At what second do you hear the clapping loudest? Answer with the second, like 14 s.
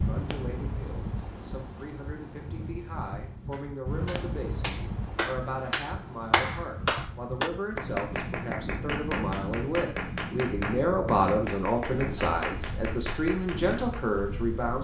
6 s.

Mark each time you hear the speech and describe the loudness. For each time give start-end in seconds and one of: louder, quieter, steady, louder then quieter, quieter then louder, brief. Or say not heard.
0.0-14.8 louder.